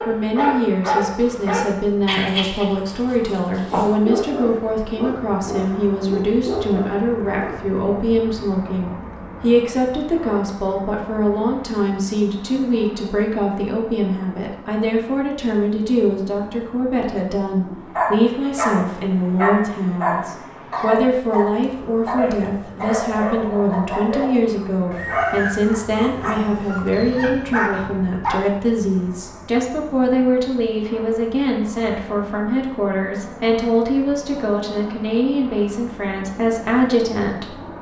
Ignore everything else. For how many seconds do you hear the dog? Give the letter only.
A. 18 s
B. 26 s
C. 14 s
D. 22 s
A.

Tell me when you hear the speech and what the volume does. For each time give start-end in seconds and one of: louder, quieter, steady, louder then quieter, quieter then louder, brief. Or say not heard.
0.1-37.6 steady.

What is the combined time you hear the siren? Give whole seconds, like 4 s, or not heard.
not heard.